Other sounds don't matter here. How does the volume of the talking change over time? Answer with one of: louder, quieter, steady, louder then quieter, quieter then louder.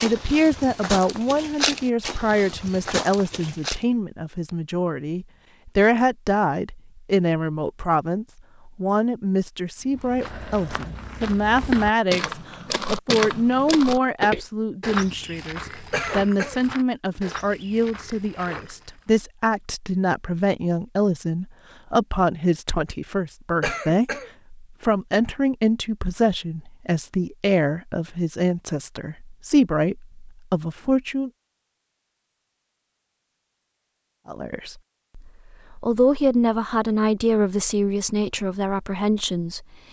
steady.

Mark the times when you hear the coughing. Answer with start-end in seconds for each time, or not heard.
15.9-16.6, 23.6-24.3.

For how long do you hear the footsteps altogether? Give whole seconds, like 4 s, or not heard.
13 s.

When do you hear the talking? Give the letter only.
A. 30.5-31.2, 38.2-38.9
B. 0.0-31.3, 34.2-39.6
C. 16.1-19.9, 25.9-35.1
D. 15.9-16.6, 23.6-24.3
B.